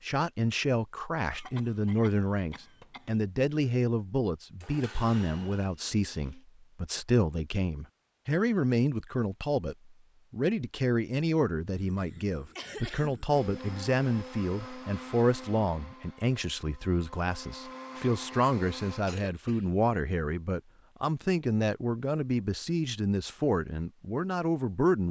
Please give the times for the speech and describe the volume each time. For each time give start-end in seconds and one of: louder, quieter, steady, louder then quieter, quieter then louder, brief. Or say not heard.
0.0-25.0 steady.